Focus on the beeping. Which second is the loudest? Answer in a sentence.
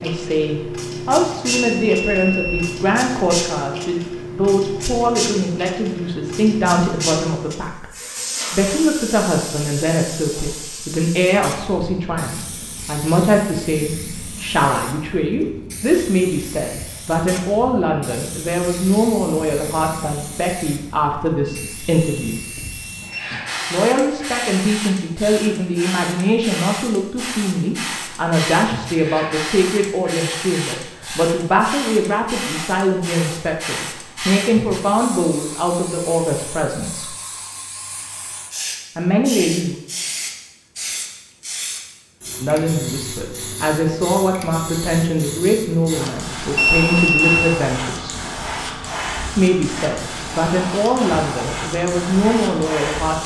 The volume of the beeping peaks at 47 seconds.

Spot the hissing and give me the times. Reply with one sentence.
The hissing can be heard from 0.0 to 53.2 s.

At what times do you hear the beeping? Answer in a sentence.
The beeping can be heard from 1.6 to 2.8 s, from 21.4 to 23.4 s and from 46.5 to 47.6 s.